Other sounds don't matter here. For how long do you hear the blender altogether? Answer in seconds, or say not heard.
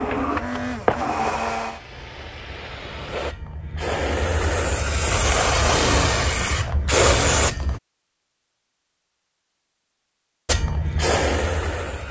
2 s.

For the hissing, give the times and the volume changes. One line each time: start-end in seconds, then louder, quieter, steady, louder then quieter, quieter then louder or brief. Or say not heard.
0.0-7.8 quieter then louder
10.4-12.0 brief.